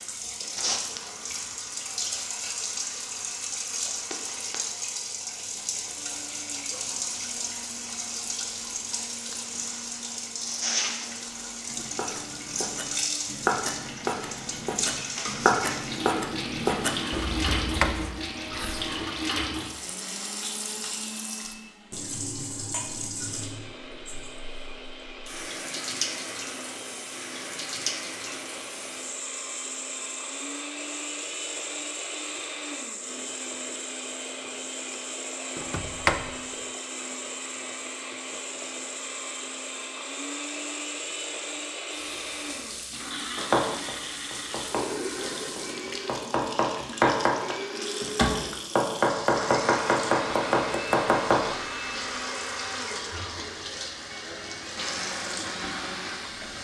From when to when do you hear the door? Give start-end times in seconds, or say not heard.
17.3-18.9, 35.5-36.4.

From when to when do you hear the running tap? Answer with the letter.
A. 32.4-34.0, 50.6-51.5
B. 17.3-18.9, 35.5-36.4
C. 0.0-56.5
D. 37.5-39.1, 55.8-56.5
C.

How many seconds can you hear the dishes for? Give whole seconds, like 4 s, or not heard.
not heard.